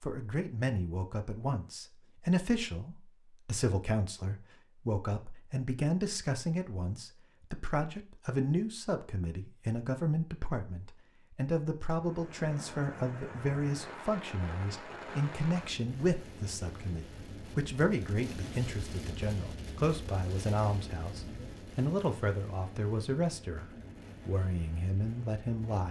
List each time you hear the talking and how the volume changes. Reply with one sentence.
The talking can be heard from 0.0 to 25.8 s, at a steady volume.